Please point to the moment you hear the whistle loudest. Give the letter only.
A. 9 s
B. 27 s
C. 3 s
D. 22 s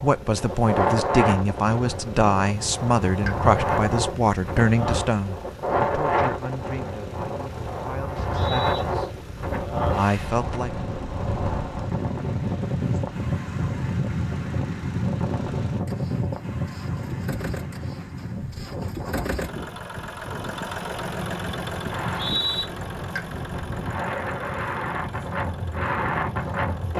D.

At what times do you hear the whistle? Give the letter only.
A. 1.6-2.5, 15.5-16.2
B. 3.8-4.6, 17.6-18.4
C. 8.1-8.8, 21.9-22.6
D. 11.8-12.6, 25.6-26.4
C.